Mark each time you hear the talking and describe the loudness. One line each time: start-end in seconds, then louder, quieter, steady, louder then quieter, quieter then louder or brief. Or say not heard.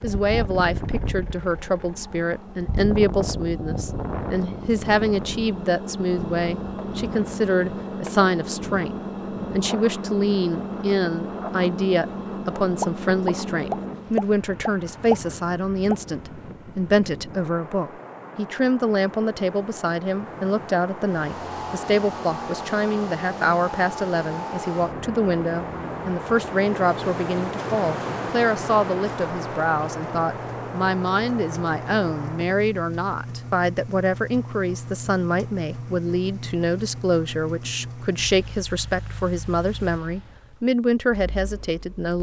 0.0-42.1 steady.